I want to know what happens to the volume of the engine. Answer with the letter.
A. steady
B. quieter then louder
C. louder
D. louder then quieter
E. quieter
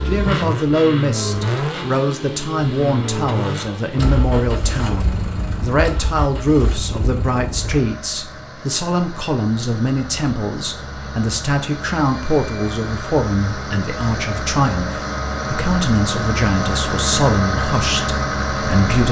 B.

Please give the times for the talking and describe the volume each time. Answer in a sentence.
The talking can be heard from 0.1 to 19.0 s, at a steady volume.